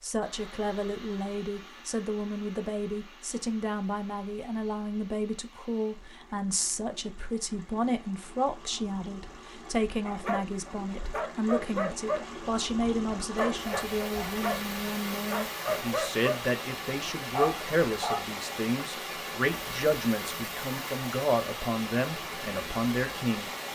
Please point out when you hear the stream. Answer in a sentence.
You can hear the stream from 0.1 to 23.7 s.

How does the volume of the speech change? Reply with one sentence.
The volume of the speech stays about the same.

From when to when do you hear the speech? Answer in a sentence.
The speech can be heard from 0.0 to 23.5 s.